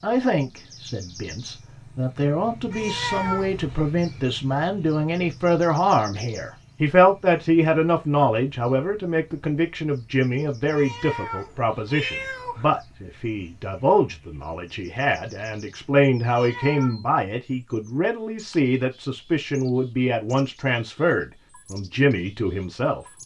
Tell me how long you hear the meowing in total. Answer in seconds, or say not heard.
4 s.